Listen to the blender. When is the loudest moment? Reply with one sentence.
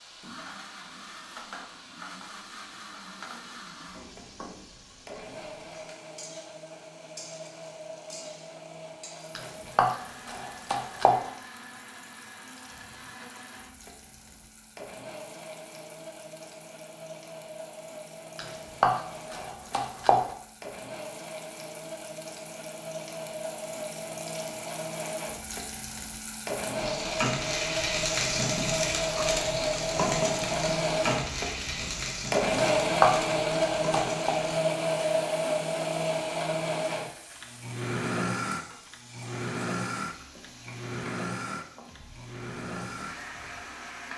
The loudest moment of the blender is at 33 seconds.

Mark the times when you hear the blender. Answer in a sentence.
You can hear the blender from 0.0 to 44.1 s.